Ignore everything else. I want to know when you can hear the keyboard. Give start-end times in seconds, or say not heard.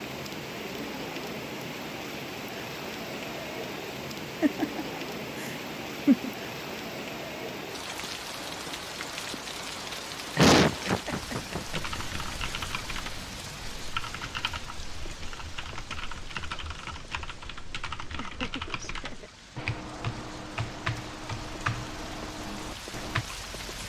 11.7-23.2.